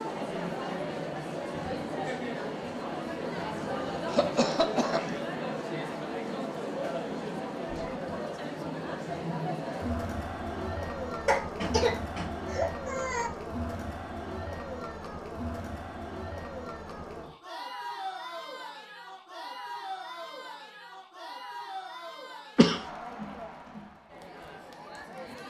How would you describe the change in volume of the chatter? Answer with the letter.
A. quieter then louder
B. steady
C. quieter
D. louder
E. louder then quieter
C.